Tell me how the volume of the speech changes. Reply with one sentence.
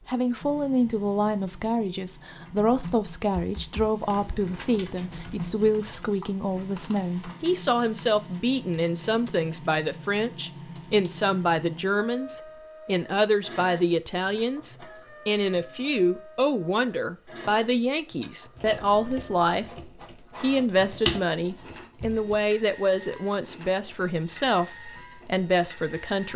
The volume of the speech stays about the same.